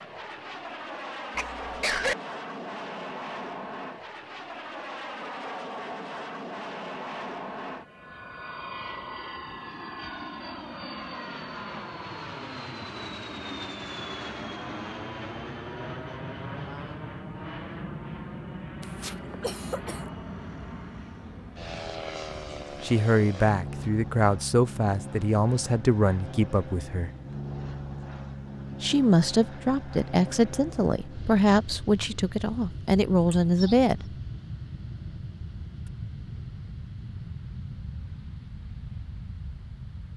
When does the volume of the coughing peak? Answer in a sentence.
The loudest moment of the coughing is at 2 seconds.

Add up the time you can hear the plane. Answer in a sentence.
You can hear the plane for 40 seconds altogether.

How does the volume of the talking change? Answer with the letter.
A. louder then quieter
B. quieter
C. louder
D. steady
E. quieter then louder
D.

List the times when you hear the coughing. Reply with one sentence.
You can hear the coughing from 1.4 to 2.1 s, from 18.8 to 20.1 s and from 33.3 to 33.8 s.